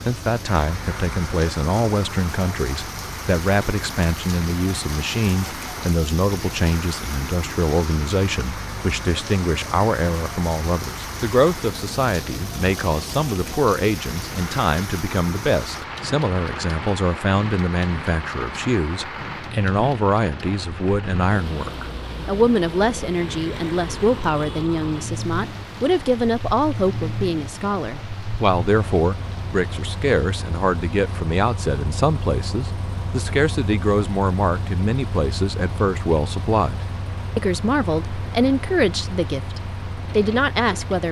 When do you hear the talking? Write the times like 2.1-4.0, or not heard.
0.0-41.0.